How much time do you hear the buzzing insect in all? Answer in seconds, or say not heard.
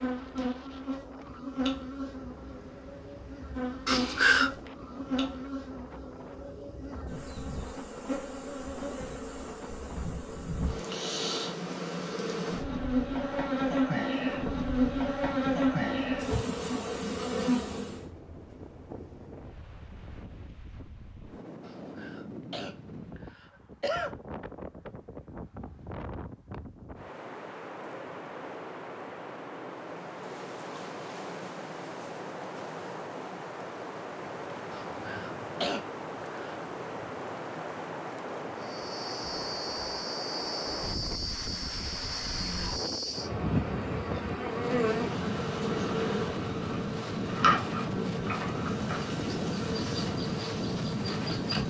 31 s.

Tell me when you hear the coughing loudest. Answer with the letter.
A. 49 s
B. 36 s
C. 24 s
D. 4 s
D.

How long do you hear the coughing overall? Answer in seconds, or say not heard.
5 s.